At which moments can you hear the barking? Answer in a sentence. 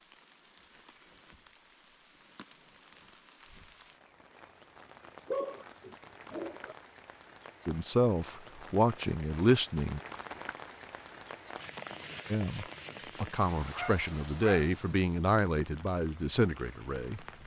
The barking can be heard from 5.2 to 6.8 s and from 13.7 to 14.7 s.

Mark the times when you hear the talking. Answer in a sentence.
You can hear the talking from 7.7 to 10.0 s and from 12.3 to 17.2 s.